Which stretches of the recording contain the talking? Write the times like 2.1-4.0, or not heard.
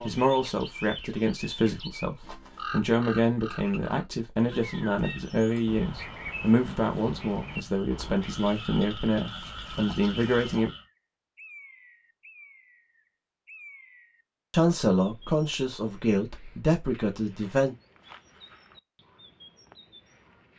0.1-10.7, 14.5-17.8.